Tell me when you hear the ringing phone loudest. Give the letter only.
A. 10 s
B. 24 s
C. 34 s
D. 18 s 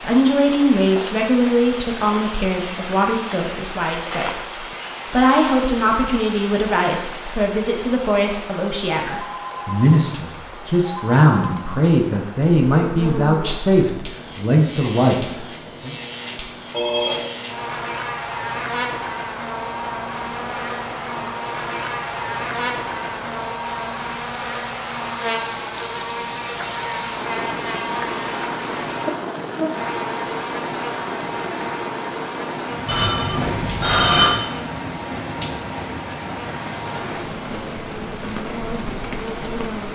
C.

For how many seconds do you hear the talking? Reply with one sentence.
The talking can be heard for 16 seconds in total.